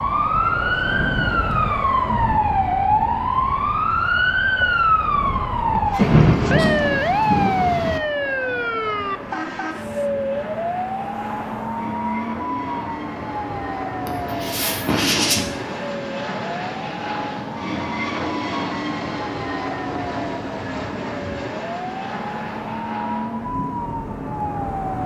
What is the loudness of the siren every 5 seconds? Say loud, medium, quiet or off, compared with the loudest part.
loud, loud, medium, quiet, medium.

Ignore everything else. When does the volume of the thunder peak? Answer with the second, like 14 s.
6 s.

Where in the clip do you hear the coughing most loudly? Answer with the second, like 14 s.
15 s.